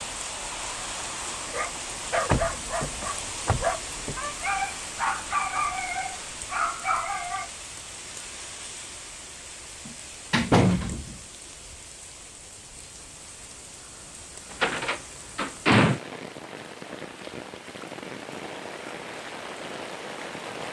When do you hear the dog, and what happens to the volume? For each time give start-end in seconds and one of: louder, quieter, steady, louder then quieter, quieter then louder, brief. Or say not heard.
1.5-7.5 steady.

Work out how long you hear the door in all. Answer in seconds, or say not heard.
5 s.